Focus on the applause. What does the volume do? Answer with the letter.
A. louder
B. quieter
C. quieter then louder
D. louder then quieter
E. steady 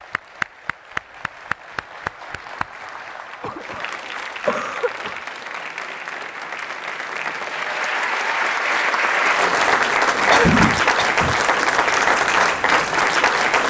A.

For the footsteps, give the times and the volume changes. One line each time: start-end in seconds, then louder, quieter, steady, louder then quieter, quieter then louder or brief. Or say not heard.
not heard.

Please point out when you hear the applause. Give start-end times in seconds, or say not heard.
0.0-13.6.